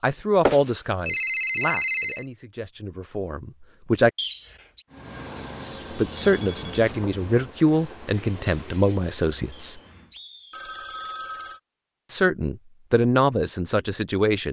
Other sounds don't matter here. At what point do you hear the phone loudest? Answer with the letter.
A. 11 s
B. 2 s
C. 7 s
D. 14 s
B.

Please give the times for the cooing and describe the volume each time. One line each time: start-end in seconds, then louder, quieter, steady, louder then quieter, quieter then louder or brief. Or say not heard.
not heard.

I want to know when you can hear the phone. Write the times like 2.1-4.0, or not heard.
0.5-2.2, 6.3-7.0, 10.5-11.6.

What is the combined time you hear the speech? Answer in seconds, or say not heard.
10 s.